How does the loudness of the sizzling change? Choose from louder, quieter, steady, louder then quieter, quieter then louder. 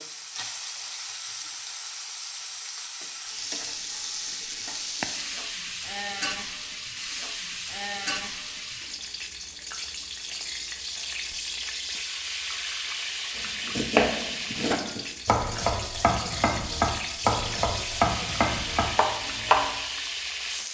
steady.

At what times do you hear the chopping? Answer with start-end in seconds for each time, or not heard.
13.3-19.8.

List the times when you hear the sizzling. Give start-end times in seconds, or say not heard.
0.0-20.7.